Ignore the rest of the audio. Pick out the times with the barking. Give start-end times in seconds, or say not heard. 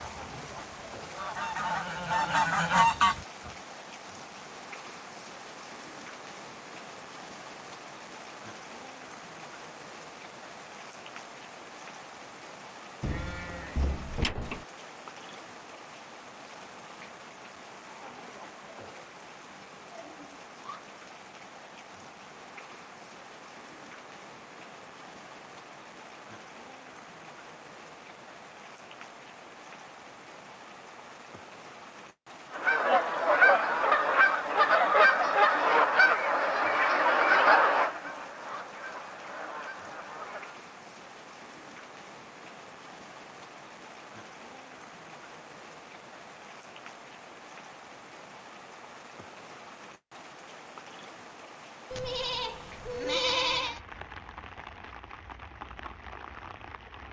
not heard.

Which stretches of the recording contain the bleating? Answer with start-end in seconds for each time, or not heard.
13.0-14.7, 51.9-53.8.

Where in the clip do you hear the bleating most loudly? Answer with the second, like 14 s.
53 s.